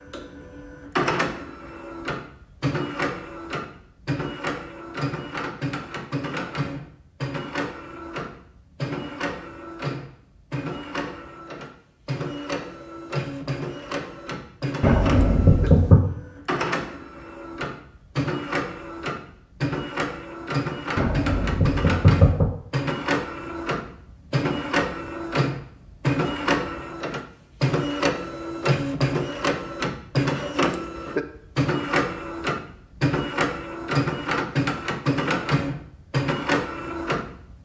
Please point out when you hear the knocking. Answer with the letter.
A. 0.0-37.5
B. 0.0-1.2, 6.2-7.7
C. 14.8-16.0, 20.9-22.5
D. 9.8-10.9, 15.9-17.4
C.